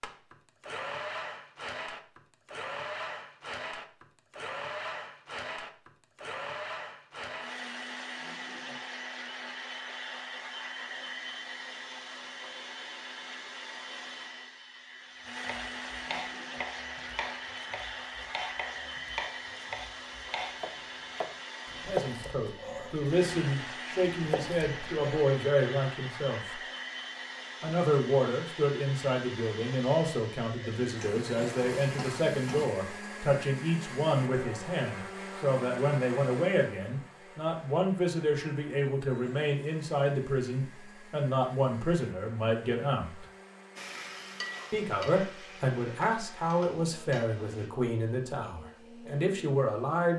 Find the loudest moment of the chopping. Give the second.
22 s.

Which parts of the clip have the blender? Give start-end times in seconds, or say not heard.
0.0-50.1.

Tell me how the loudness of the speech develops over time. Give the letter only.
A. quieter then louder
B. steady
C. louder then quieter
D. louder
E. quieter
B.